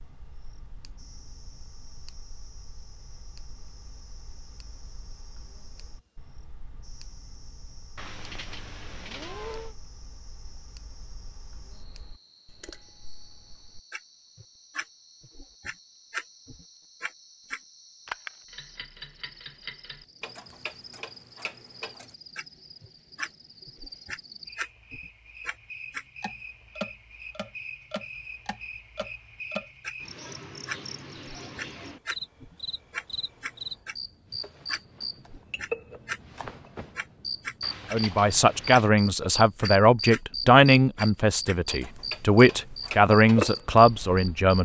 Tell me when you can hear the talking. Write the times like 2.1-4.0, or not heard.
37.9-44.5.